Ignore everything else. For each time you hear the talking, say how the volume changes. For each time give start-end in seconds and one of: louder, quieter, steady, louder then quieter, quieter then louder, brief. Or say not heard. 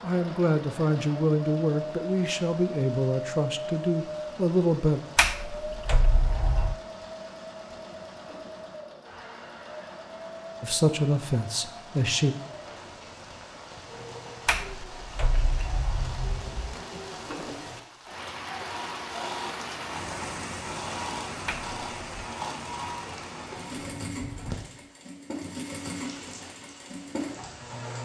0.0-5.0 steady
10.6-12.3 brief.